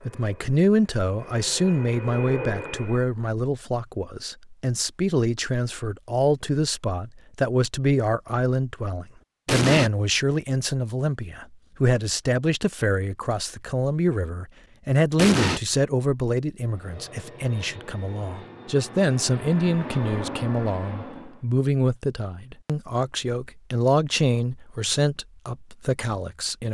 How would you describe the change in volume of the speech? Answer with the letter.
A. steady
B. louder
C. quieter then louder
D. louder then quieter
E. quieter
A.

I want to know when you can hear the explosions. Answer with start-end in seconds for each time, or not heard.
9.4-9.9, 15.2-15.6.